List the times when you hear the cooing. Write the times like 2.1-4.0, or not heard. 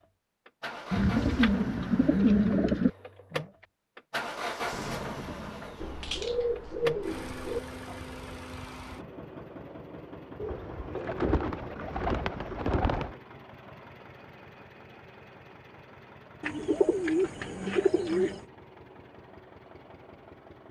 0.9-2.9, 5.8-7.6, 10.4-13.2, 16.4-18.4.